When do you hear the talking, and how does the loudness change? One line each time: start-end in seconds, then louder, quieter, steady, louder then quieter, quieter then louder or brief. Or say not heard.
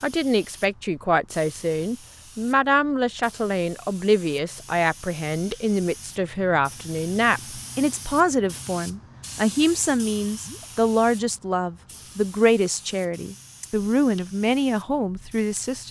0.0-15.8 steady.